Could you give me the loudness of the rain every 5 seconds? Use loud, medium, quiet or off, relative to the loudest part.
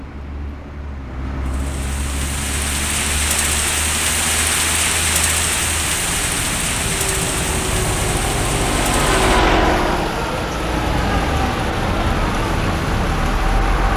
loud, loud, medium.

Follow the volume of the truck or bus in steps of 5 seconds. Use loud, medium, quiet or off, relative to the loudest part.
medium, loud, loud.